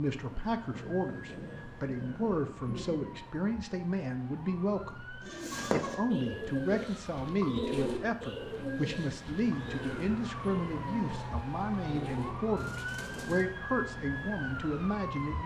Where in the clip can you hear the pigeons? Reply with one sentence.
The pigeons can be heard from 5.2 to 13.4 s.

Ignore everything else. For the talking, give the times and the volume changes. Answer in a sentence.
You can hear the talking from 0.0 to 15.4 s, at a steady volume.